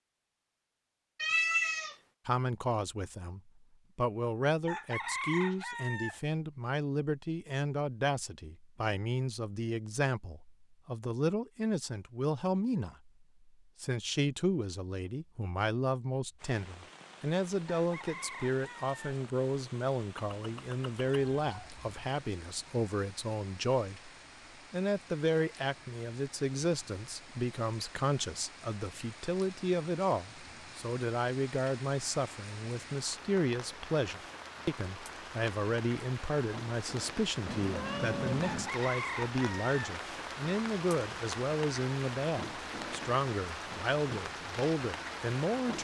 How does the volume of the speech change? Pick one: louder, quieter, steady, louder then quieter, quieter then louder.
steady.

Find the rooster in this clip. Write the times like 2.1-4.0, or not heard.
4.7-6.2, 17.7-19.2, 38.4-39.8.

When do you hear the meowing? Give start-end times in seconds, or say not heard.
1.1-1.9, 20.1-21.9, 37.5-38.7.